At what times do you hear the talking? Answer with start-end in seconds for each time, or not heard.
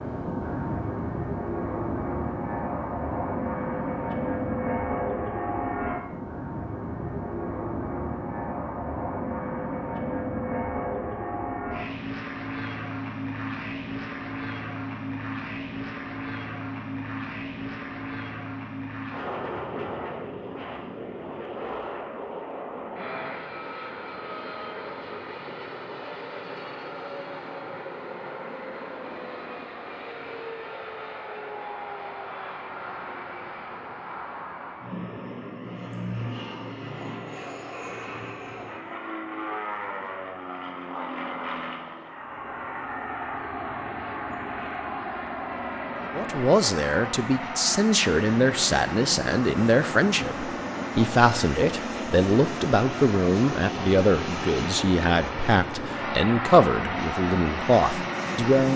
46.1-58.7.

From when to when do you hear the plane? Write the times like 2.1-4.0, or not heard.
0.0-58.7.